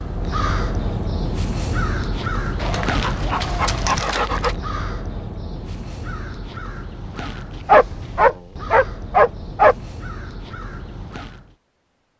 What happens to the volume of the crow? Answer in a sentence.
The loudness of the crow goes down.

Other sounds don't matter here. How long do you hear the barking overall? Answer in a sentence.
The barking can be heard for 4 seconds in total.